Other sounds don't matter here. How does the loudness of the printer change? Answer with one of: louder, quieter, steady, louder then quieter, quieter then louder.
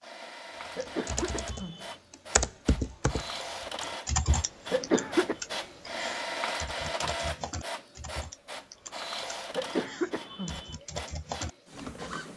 louder then quieter.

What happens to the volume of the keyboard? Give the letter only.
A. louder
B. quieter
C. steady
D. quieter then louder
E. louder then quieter
D.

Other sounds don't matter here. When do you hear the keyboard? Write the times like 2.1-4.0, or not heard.
0.8-12.2.